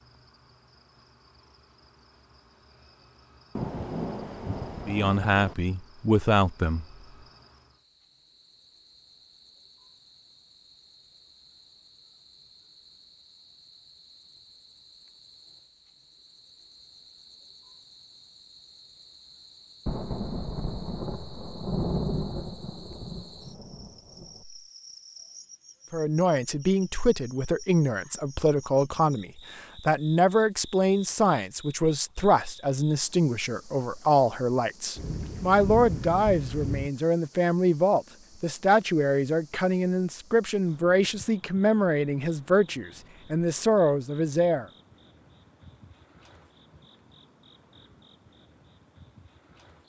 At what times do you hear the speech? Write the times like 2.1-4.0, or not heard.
4.8-6.8, 25.9-44.6.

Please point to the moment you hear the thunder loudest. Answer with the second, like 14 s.
22 s.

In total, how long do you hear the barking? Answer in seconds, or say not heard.
not heard.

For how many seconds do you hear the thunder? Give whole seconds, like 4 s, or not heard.
9 s.